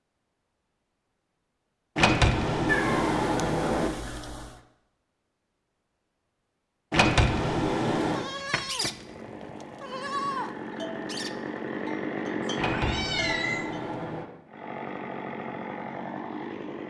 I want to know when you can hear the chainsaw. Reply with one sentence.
You can hear the chainsaw from 8.9 to 13.2 s and from 14.4 to 16.8 s.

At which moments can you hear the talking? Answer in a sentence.
The talking can't be heard in this clip.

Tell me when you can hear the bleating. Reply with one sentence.
The bleating can be heard from 8.0 to 14.1 s.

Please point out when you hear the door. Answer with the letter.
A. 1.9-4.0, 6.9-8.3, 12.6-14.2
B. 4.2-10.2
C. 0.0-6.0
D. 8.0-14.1
A.